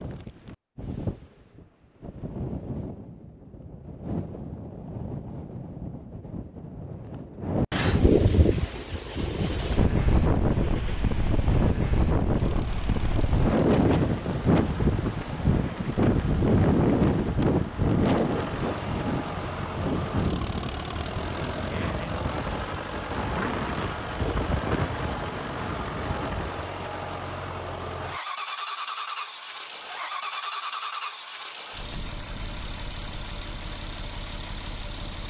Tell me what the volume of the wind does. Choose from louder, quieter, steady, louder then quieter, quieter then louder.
louder then quieter.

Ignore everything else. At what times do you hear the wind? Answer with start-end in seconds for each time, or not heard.
0.0-26.7.